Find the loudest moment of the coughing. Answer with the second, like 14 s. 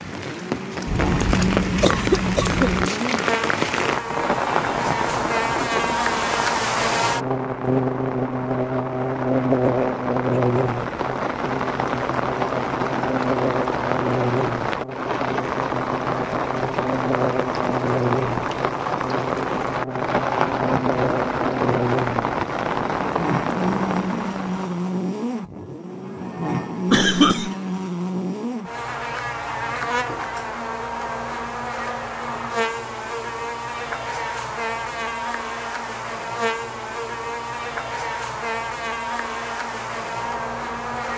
27 s.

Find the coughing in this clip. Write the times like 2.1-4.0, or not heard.
0.8-2.9, 26.9-27.6.